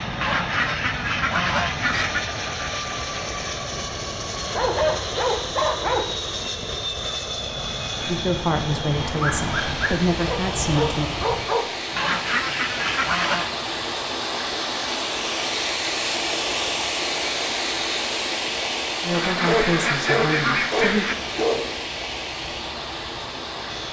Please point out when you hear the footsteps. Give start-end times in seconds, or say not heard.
not heard.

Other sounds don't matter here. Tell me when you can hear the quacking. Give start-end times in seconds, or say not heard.
0.2-2.2, 11.9-13.5, 19.1-21.1.